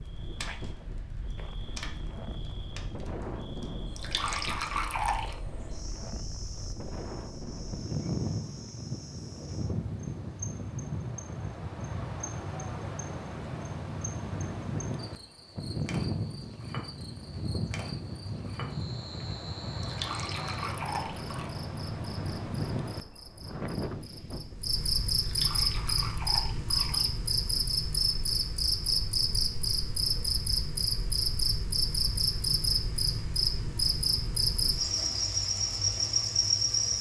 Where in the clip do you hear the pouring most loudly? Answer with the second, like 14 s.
5 s.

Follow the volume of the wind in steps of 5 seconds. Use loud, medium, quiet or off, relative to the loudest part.
medium, loud, loud, loud, loud, off, off, off.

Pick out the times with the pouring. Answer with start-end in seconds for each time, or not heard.
4.0-5.3, 19.8-21.5, 25.2-27.1.